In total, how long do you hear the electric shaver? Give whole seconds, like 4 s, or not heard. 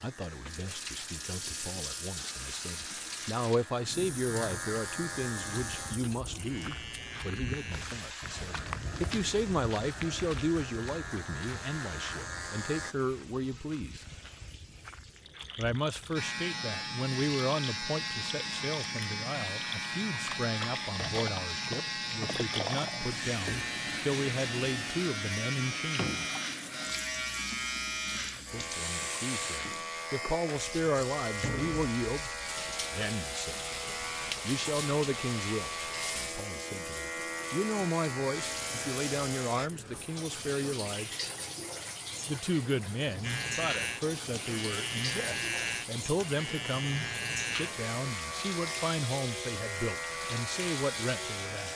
45 s.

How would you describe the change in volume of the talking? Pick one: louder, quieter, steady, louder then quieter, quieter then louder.
steady.